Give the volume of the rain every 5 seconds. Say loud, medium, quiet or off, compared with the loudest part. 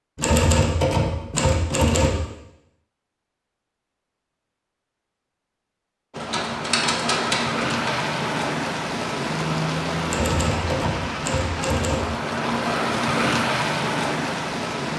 off, loud, loud.